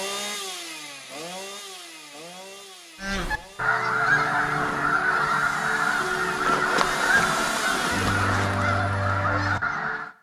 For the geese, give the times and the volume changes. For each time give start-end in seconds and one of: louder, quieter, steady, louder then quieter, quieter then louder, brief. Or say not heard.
3.0-10.1 steady.